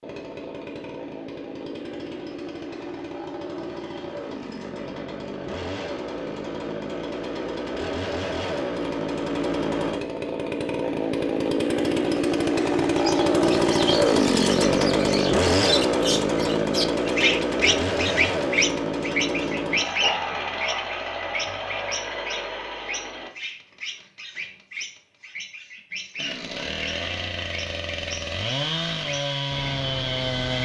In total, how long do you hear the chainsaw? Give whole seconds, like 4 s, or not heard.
28 s.